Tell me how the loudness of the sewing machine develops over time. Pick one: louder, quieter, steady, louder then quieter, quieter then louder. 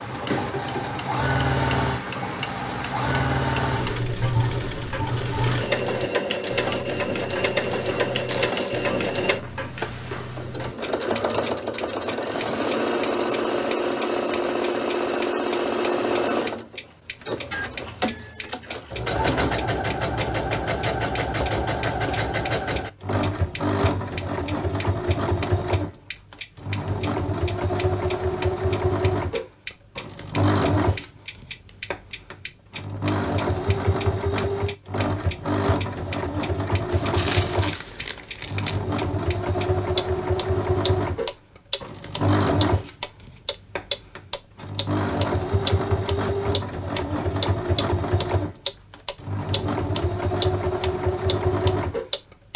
steady.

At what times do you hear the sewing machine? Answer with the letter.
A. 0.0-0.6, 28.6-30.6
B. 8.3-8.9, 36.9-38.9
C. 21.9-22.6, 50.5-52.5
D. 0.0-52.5
D.